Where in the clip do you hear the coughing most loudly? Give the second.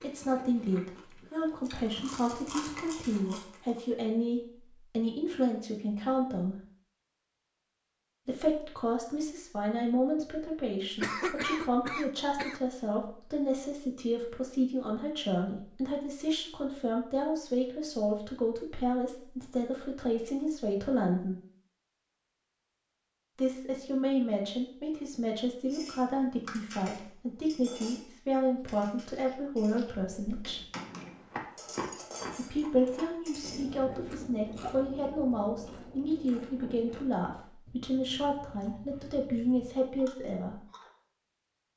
11 s.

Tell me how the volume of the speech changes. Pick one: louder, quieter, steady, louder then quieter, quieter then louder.
steady.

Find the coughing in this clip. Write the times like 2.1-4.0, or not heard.
11.0-12.6, 32.9-34.8.